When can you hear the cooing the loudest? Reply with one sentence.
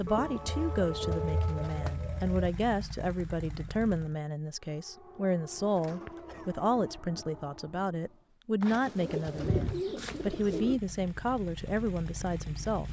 The volume of the cooing peaks at 10 seconds.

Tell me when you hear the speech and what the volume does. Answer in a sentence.
You can hear the speech from 0.0 to 12.8 s, at a steady volume.